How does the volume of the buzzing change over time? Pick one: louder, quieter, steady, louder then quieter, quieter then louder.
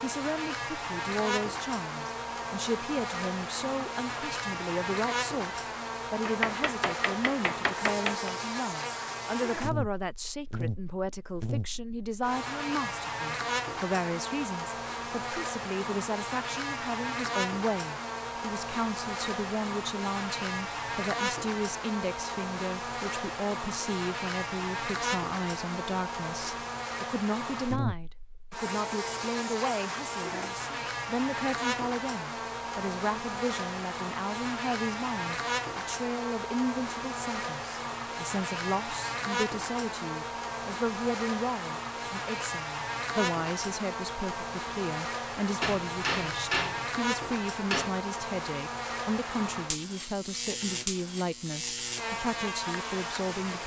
steady.